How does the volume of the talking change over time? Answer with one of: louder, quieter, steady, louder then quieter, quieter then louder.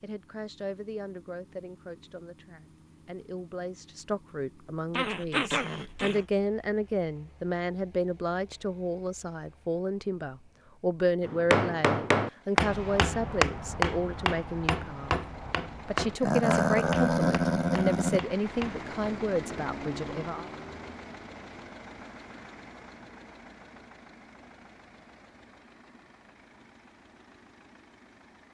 louder.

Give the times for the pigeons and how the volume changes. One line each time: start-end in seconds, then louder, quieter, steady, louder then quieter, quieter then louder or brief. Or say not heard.
not heard.